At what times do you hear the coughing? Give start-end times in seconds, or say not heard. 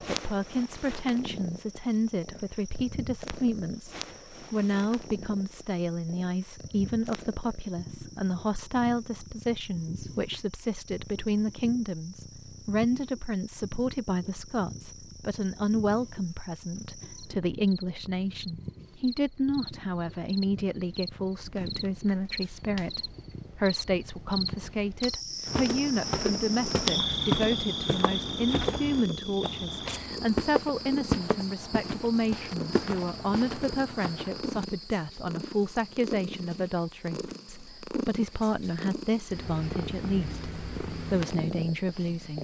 not heard.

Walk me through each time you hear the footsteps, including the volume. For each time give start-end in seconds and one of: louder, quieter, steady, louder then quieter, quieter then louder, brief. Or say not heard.
25.4-34.6 quieter.